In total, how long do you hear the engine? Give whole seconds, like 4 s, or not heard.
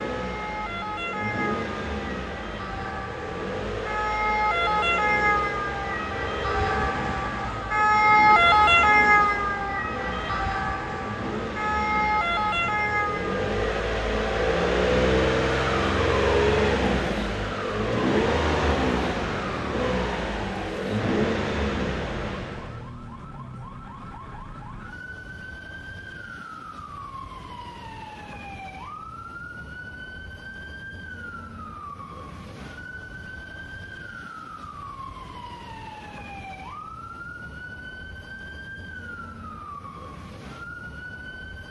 23 s.